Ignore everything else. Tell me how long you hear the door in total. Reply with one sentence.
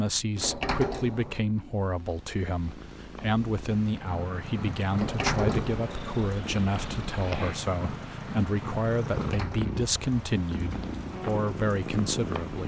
You can hear the door for 3 seconds altogether.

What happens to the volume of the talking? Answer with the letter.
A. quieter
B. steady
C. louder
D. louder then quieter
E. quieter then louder
B.